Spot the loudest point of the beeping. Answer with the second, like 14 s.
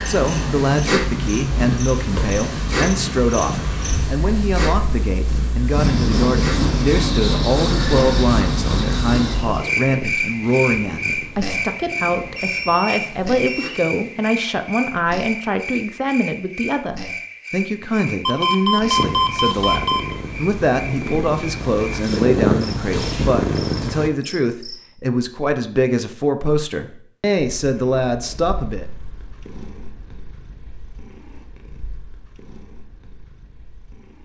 19 s.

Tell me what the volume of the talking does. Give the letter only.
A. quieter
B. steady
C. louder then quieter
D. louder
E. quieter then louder
B.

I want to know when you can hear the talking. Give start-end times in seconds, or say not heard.
0.1-28.9.